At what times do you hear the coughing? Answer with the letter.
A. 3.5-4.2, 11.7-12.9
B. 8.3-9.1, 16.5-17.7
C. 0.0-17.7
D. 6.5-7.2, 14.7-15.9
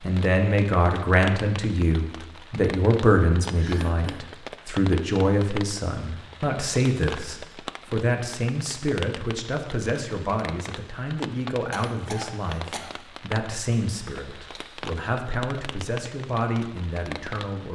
A.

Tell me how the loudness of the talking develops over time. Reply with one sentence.
The volume of the talking goes down.